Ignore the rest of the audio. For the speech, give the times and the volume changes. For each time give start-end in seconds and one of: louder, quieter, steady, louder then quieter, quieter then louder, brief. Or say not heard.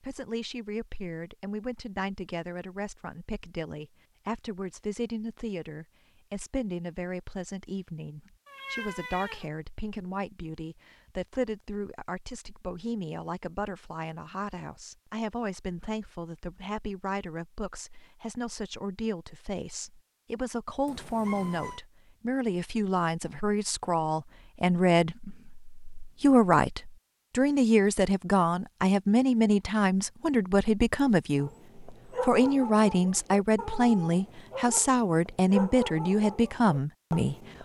0.0-37.4 louder.